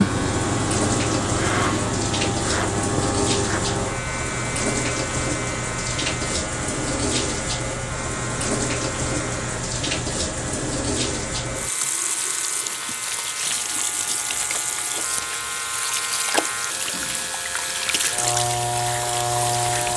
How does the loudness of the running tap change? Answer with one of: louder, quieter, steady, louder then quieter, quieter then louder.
steady.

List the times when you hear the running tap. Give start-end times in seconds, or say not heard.
0.0-19.9.